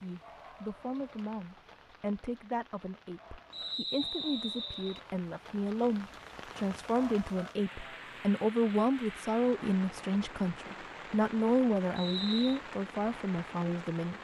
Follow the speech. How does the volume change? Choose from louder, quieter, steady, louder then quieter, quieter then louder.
louder.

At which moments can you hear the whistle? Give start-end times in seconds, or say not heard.
3.5-5.0, 11.9-12.6.